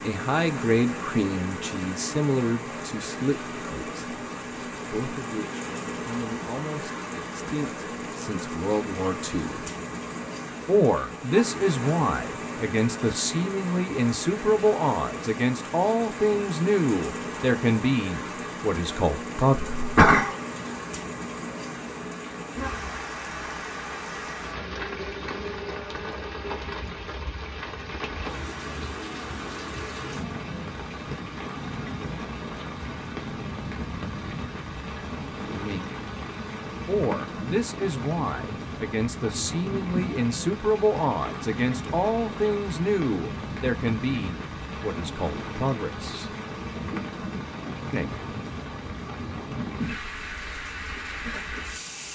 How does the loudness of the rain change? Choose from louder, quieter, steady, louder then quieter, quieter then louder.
steady.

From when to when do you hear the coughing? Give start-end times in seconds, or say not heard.
19.6-20.4.